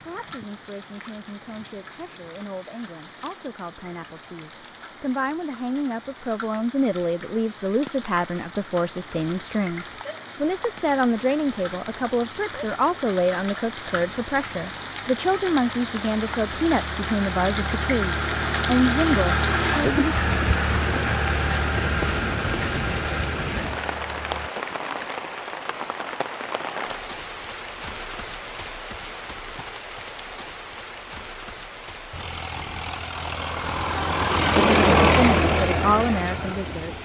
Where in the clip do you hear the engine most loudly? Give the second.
35 s.